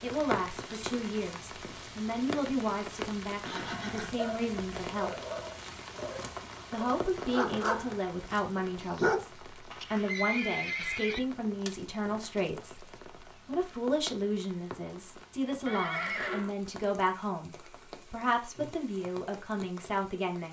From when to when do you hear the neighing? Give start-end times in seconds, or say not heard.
3.5-4.9, 9.7-11.2, 15.7-16.6.